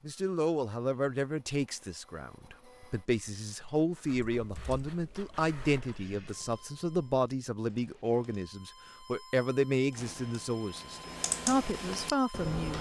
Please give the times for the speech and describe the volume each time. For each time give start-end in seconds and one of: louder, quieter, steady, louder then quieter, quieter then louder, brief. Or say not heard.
0.1-12.7 steady.